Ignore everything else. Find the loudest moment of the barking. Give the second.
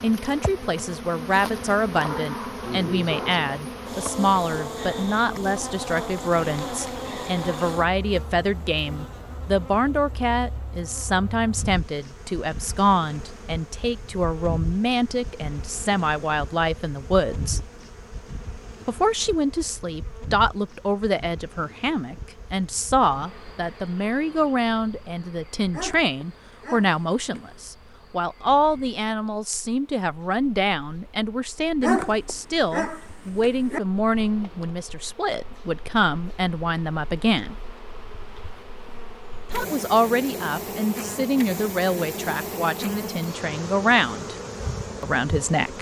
32 s.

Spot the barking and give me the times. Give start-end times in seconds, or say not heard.
1.9-3.5, 25.7-27.6, 31.8-33.8.